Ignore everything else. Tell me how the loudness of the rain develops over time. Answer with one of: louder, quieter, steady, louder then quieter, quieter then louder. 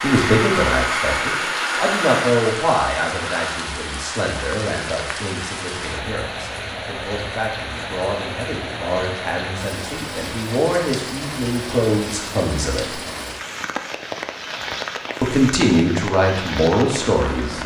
steady.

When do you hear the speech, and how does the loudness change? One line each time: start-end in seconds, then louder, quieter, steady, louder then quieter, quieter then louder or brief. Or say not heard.
0.0-13.0 quieter then louder
15.2-17.6 brief.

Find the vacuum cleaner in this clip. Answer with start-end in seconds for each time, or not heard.
0.0-3.7.